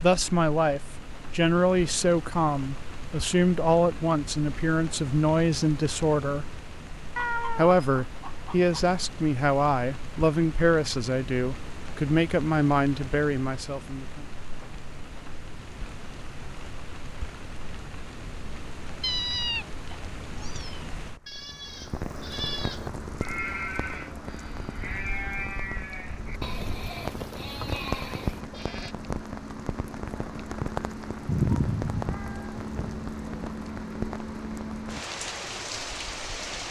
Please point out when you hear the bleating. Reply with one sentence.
The bleating can be heard from 21.2 to 28.9 s.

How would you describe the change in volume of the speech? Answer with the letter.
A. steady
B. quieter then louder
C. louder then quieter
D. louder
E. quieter
A.